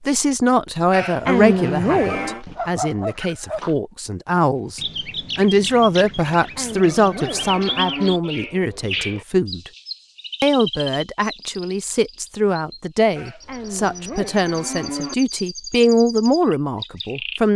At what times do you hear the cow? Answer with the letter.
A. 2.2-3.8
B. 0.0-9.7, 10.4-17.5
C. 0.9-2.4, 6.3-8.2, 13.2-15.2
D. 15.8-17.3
C.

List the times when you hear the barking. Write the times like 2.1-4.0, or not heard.
2.2-3.8.